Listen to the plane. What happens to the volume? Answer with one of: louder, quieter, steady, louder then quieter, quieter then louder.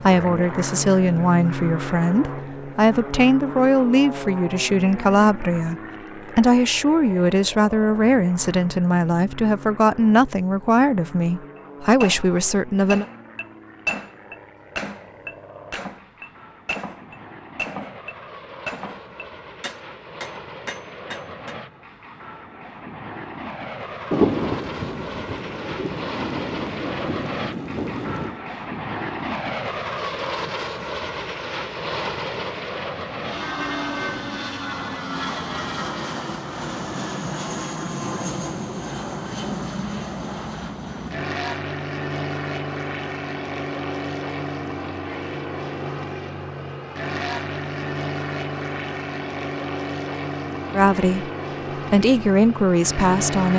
quieter then louder.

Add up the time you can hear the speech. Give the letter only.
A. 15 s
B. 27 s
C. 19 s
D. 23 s
A.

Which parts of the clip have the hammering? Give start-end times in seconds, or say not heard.
11.6-21.6.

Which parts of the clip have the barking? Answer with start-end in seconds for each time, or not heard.
not heard.